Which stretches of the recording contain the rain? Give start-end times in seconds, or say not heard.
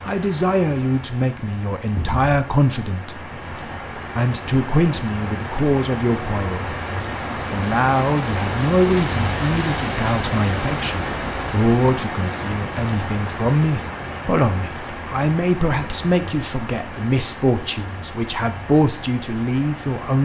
0.0-20.2.